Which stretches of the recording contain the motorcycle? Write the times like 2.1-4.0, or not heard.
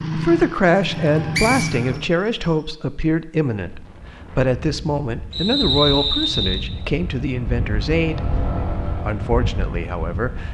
0.0-2.0, 6.7-10.4.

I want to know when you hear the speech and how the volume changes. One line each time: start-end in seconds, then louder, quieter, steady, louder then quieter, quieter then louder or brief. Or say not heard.
0.0-8.2 quieter
9.0-10.4 brief.